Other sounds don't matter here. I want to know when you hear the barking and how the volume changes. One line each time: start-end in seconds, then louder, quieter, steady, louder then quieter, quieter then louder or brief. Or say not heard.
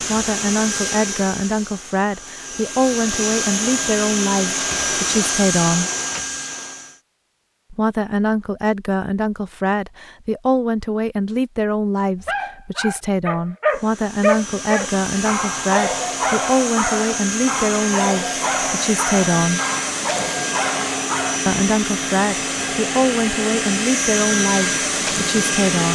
12.2-21.4 quieter.